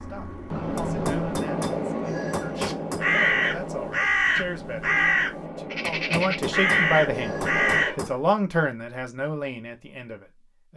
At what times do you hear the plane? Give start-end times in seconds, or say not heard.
0.0-8.0.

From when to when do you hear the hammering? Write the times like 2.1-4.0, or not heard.
0.8-3.0, 5.8-8.2.